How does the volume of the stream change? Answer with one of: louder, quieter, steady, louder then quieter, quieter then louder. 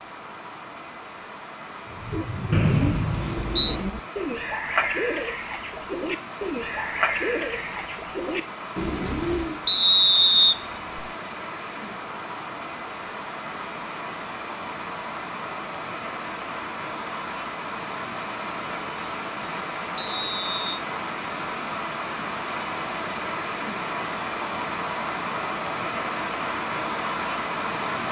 louder.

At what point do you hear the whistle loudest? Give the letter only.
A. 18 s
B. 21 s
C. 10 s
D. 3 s
C.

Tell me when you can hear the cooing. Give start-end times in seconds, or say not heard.
1.9-9.6.